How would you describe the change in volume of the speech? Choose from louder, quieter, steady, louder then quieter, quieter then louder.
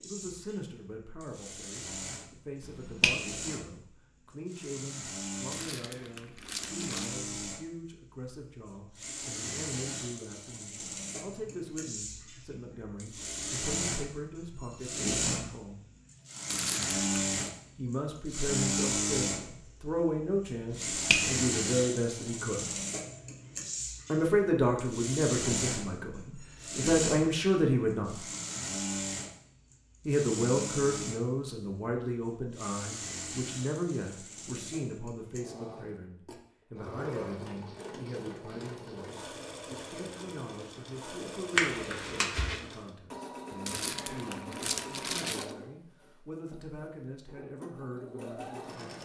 louder then quieter.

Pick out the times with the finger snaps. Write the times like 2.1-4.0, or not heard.
2.6-3.1, 20.7-21.2, 41.5-42.6.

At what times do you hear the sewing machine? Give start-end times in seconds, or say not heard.
0.0-49.0.